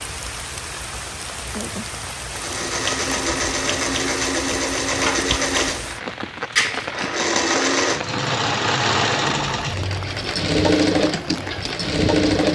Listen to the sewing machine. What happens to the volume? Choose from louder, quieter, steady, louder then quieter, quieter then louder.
steady.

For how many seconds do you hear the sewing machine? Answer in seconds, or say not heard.
10 s.